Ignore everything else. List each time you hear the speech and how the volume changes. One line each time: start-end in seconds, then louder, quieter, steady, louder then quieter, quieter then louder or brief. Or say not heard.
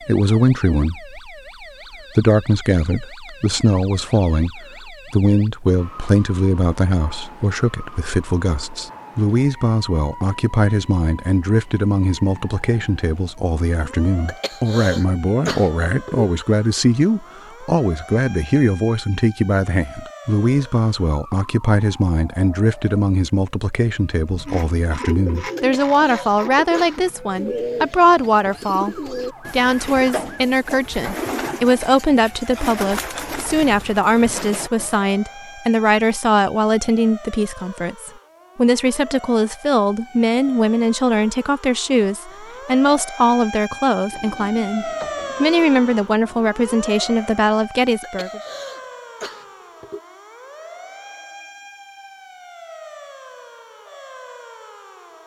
0.1-1.3 brief
1.9-48.4 steady.